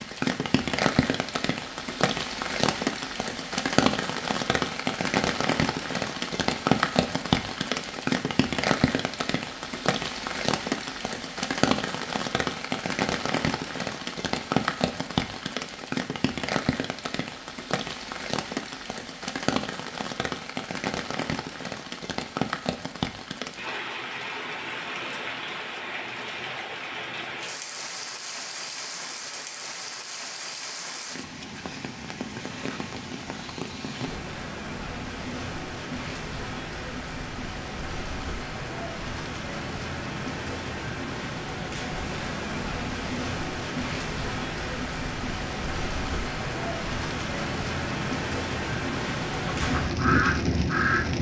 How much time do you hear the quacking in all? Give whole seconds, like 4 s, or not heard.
2 s.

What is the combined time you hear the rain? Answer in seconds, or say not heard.
51 s.